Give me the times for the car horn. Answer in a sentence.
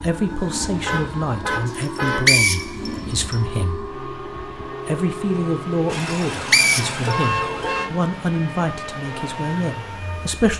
The car horn can be heard from 0.8 to 2.2 s and from 5.8 to 7.9 s.